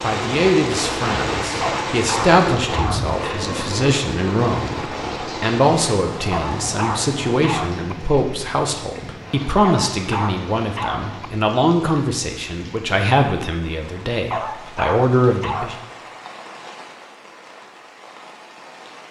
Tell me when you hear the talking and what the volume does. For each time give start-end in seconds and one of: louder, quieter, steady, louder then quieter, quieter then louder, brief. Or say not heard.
0.0-15.8 steady.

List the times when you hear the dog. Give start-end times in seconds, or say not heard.
1.6-3.1, 6.3-8.0, 9.6-11.3, 14.3-15.8.